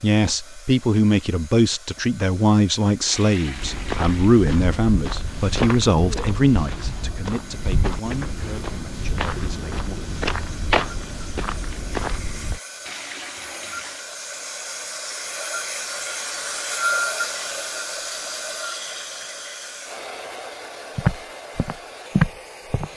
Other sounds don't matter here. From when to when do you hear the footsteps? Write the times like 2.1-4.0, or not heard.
3.5-12.6, 20.9-22.9.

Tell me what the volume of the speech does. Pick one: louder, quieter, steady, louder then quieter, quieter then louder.
quieter.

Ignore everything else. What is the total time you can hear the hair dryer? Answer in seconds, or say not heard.
23 s.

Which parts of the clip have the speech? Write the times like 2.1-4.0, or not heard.
0.0-9.9.